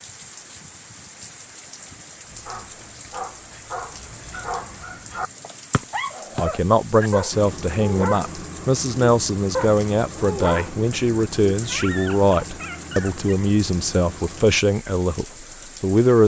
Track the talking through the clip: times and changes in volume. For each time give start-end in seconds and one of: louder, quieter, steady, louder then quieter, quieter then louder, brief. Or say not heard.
6.3-16.2 steady.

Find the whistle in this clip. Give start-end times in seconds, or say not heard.
5.7-6.5.